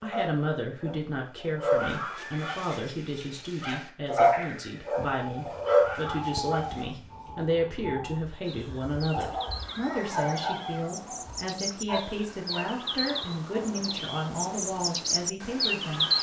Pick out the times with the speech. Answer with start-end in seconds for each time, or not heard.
0.0-16.1.